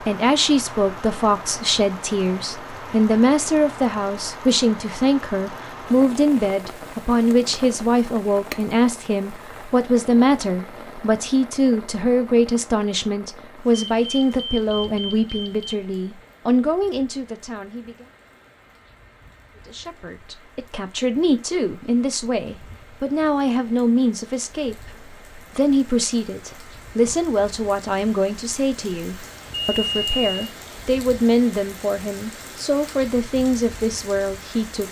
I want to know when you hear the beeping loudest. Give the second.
30 s.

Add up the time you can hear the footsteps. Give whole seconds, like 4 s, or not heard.
not heard.